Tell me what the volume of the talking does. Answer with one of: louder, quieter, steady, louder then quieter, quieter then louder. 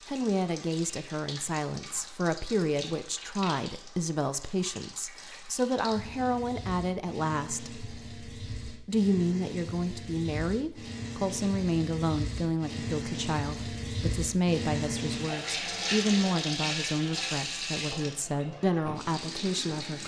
steady.